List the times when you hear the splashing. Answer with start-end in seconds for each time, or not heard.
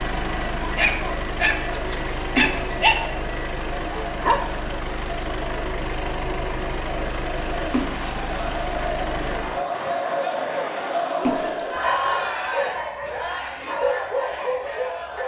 2.4-2.9, 7.7-8.2, 11.2-11.8.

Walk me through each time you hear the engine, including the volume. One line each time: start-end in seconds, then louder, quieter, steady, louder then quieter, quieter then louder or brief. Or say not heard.
0.0-9.7 steady.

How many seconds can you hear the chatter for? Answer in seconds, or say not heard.
15 s.